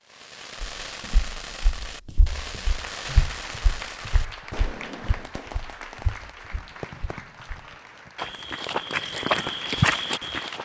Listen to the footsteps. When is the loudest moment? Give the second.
10 s.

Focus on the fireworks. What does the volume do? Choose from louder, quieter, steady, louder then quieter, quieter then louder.
quieter.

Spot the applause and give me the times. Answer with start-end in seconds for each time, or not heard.
2.7-10.6.